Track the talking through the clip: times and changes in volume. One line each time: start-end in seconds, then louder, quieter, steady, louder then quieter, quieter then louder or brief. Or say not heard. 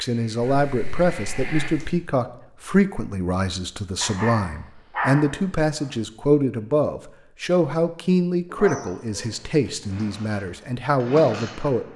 0.0-11.9 steady.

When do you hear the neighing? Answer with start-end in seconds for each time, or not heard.
not heard.